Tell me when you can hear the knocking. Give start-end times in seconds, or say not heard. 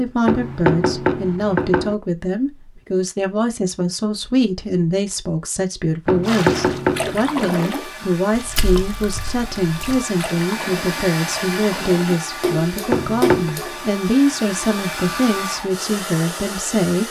0.2-1.9, 6.0-7.2, 12.9-13.6.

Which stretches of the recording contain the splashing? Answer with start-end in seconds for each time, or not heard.
6.2-13.8.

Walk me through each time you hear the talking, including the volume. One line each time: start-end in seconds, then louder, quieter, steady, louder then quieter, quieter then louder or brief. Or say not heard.
0.0-17.0 steady.